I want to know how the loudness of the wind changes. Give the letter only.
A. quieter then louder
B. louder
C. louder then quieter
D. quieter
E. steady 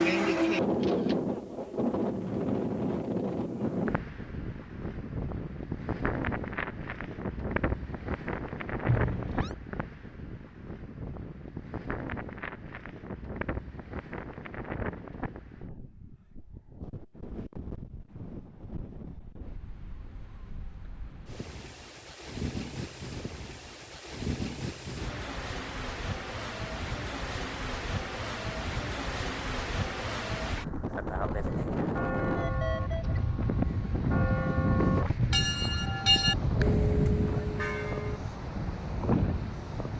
A.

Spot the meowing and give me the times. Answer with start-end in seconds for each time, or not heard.
8.8-9.6, 35.1-35.8.